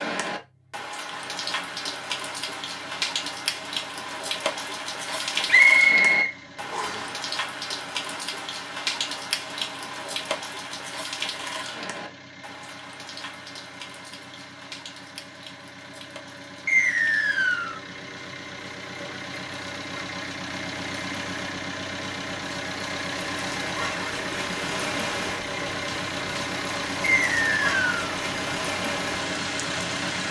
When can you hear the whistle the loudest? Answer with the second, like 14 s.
6 s.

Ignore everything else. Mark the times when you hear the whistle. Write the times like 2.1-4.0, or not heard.
5.5-6.9, 16.6-17.8, 27.1-28.0.